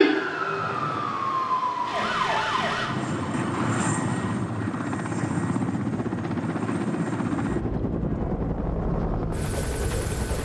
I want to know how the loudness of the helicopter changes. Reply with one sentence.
The volume of the helicopter goes up.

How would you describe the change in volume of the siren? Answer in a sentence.
The loudness of the siren goes down.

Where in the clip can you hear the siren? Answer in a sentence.
You can hear the siren from 0.0 to 4.3 s.